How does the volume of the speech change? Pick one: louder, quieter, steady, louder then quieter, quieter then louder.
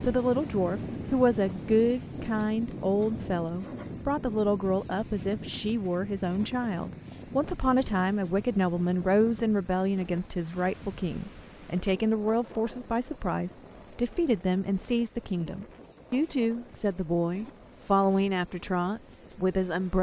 steady.